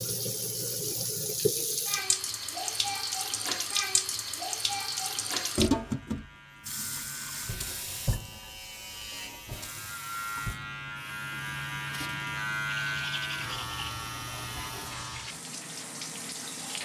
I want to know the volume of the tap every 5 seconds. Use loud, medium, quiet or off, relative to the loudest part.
loud, loud, quiet, medium.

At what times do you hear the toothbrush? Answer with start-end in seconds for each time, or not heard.
12.7-13.9.